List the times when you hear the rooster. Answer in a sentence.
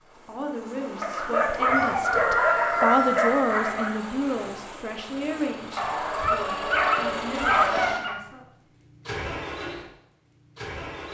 You can hear the rooster from 1.6 to 3.5 s.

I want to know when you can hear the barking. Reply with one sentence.
You can hear the barking from 1.0 to 4.0 s and from 5.8 to 8.2 s.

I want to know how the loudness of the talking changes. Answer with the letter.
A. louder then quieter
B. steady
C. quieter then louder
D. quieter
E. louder
A.